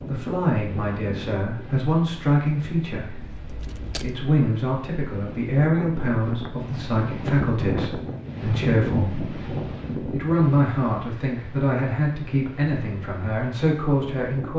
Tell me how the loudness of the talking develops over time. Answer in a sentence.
The loudness of the talking stays about the same.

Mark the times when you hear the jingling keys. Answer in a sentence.
You can hear the jingling keys from 3.2 to 4.2 s.